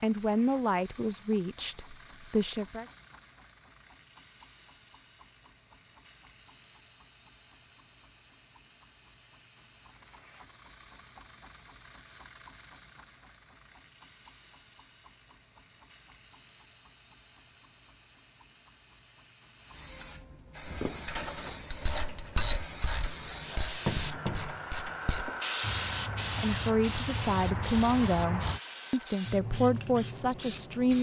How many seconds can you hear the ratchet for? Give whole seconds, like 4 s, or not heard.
8 s.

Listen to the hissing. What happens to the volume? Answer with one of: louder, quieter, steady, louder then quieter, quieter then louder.
louder.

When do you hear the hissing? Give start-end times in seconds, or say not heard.
0.0-30.9.